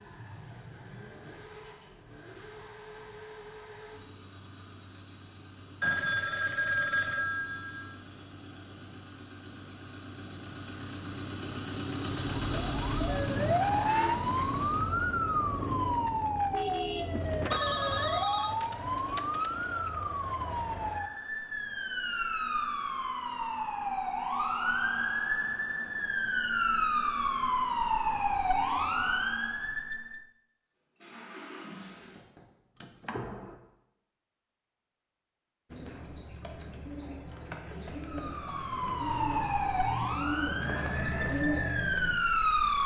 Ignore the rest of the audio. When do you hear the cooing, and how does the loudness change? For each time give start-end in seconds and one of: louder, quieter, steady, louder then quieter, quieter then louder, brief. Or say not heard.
35.7-42.2 louder.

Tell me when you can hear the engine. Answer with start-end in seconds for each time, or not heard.
0.0-15.2, 30.9-33.5.